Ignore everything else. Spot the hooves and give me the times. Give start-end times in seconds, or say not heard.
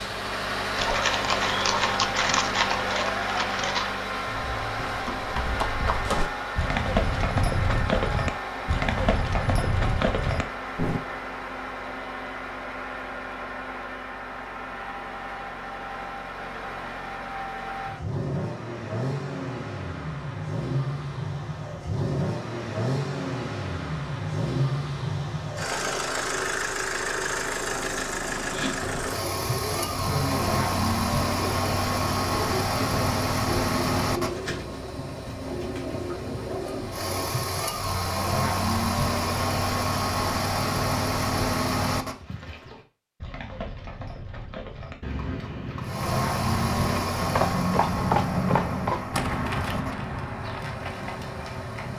0.7-11.0, 42.0-51.9.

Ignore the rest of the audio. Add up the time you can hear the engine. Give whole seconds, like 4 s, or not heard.
48 s.